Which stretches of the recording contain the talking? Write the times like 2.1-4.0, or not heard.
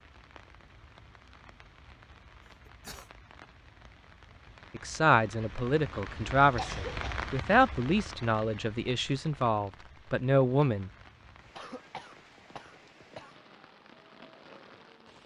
4.8-10.9.